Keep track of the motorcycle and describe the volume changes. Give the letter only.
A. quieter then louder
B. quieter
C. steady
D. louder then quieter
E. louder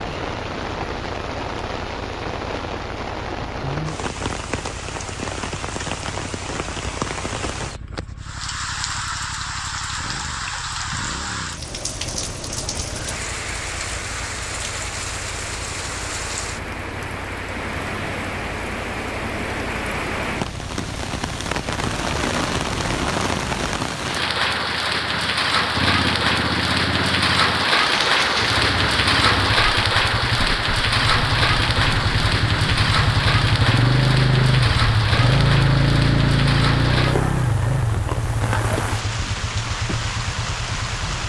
E.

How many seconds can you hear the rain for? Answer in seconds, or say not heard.
41 s.